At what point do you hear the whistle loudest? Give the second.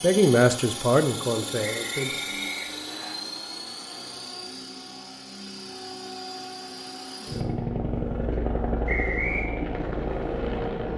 9 s.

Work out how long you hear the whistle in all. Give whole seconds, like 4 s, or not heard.
2 s.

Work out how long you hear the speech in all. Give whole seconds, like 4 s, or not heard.
2 s.